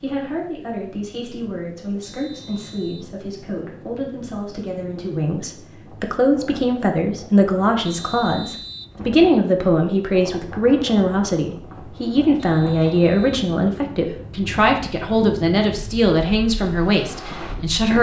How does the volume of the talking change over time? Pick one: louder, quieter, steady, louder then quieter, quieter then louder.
louder.